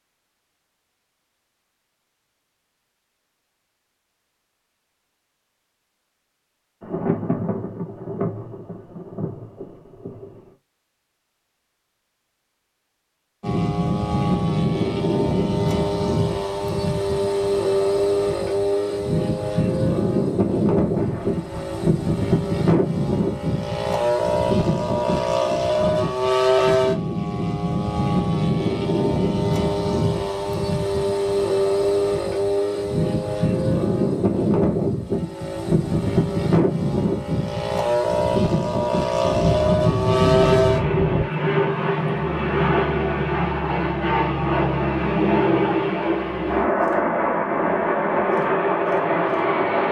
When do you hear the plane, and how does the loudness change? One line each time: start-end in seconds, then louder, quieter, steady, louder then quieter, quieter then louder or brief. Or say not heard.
13.4-49.8 steady.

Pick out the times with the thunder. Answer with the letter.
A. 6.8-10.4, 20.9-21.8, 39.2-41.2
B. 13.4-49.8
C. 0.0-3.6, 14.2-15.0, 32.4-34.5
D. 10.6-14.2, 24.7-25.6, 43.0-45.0
A.